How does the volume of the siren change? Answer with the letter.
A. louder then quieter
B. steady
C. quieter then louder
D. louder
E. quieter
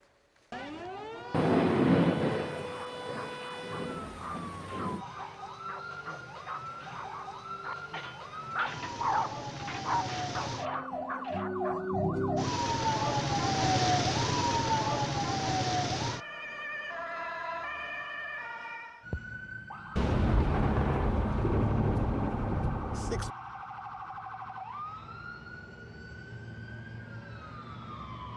A.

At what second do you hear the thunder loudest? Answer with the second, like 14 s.
2 s.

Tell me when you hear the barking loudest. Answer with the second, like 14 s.
9 s.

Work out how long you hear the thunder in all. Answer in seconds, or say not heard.
7 s.